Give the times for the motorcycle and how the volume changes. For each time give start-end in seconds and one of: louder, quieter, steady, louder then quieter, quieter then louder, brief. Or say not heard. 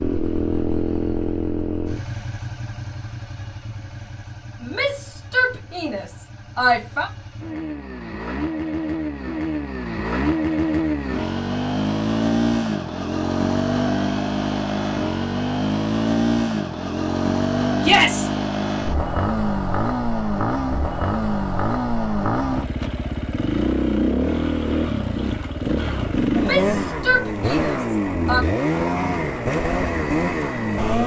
0.0-31.0 louder.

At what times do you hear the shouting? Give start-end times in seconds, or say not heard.
4.6-7.1, 17.8-18.3, 26.3-28.4.